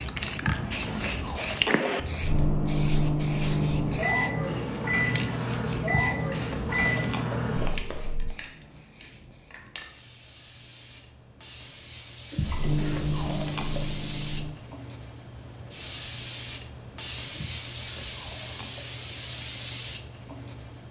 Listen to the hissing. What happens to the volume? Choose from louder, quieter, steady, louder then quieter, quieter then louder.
quieter then louder.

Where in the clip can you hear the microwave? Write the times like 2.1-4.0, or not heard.
2.2-8.3, 12.4-14.6.